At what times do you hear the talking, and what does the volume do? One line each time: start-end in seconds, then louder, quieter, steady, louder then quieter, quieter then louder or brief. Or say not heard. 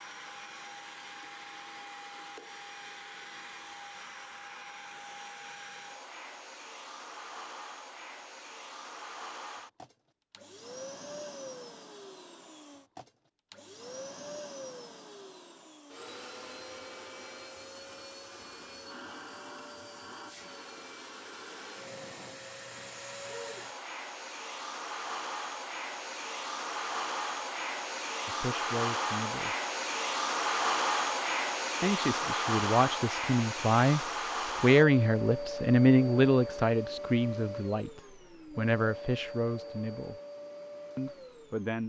28.2-29.6 brief
31.8-40.1 louder then quieter
41.0-41.8 brief.